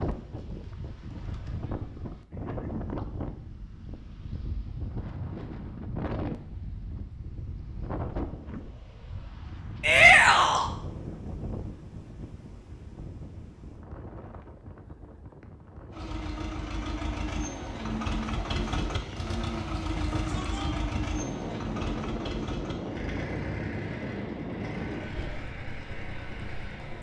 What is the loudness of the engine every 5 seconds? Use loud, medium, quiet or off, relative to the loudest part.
off, off, off, loud, loud, medium.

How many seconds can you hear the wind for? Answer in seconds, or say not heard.
27 s.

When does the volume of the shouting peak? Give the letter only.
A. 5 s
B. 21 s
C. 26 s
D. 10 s
D.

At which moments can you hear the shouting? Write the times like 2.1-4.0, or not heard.
9.8-10.7, 20.1-20.9.